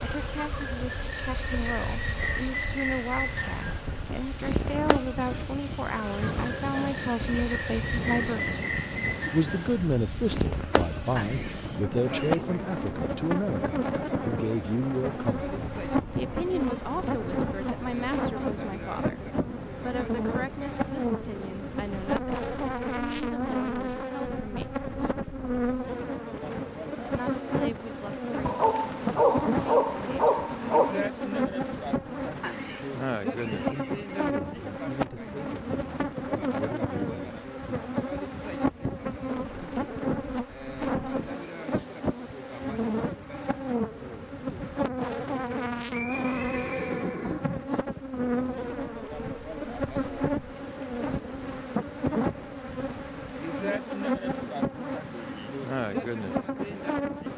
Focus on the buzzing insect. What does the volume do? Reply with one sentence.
The volume of the buzzing insect stays about the same.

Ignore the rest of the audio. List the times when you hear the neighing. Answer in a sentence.
The neighing can be heard from 11.2 to 12.4 s, from 32.4 to 34.3 s and from 45.9 to 47.7 s.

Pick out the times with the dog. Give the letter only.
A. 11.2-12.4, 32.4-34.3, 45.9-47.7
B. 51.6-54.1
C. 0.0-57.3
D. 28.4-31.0
D.